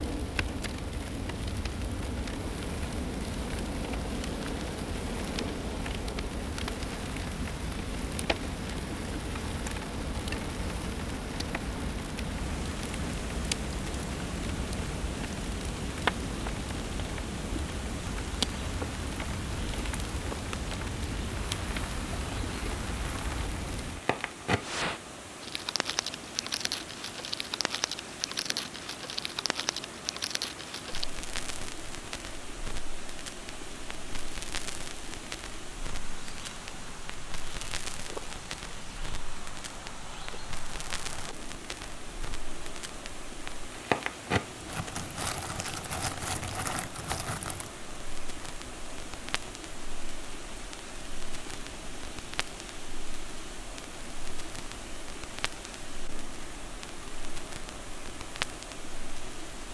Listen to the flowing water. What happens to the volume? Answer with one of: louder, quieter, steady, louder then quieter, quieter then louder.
steady.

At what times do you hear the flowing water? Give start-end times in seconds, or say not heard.
12.3-59.7.